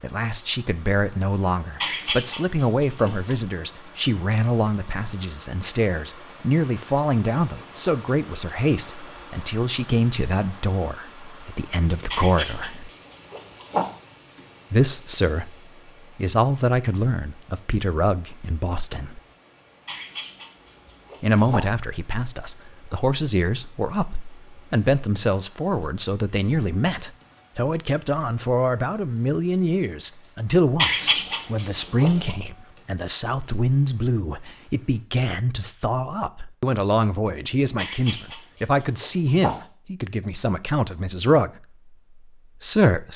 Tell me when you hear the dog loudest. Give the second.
31 s.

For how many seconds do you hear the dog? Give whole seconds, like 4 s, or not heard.
9 s.